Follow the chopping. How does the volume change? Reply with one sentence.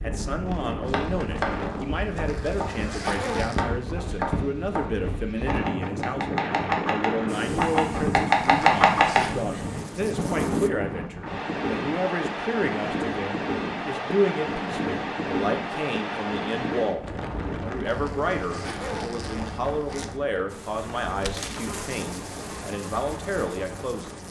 The volume of the chopping goes up.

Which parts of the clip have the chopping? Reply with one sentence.
The chopping can be heard from 0.8 to 9.2 s.